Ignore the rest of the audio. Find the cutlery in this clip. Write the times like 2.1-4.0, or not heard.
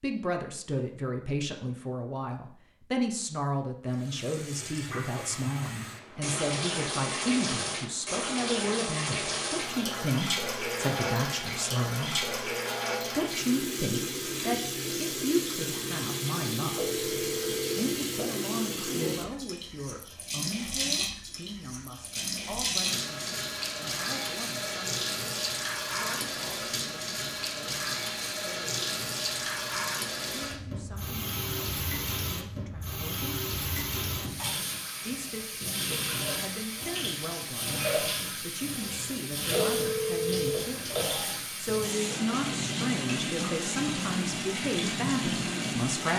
not heard.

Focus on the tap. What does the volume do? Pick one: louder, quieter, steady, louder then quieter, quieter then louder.
steady.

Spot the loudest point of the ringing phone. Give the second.
40 s.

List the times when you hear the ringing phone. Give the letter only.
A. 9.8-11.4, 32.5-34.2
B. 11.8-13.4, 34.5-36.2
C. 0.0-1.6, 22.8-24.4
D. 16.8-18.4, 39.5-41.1
D.